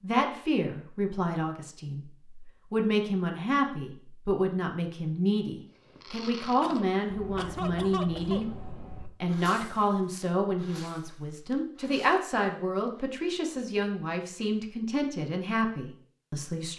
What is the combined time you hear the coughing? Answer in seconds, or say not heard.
2 s.